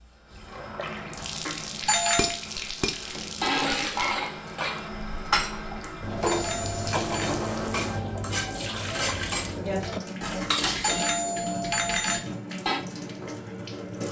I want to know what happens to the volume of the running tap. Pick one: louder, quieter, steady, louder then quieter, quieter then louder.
steady.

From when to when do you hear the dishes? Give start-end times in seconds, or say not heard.
2.1-12.8.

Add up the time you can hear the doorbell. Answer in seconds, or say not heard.
4 s.